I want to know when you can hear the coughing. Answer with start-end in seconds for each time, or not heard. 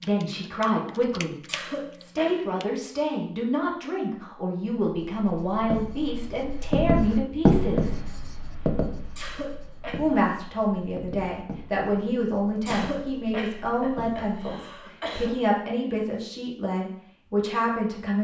1.4-2.6, 9.2-10.1, 12.7-15.3.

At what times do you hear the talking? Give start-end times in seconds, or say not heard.
0.0-1.4, 2.0-8.0, 9.9-18.1.